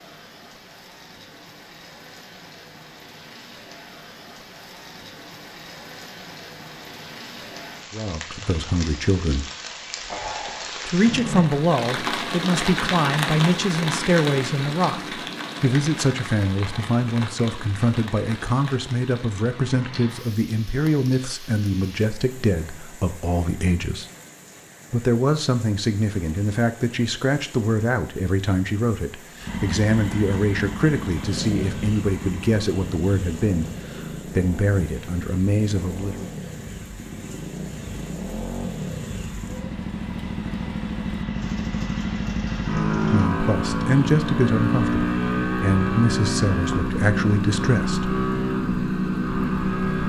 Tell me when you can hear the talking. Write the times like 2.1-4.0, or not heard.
7.9-9.4, 10.8-24.1, 24.9-36.2, 43.1-48.1.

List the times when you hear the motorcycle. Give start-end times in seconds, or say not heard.
29.4-50.0.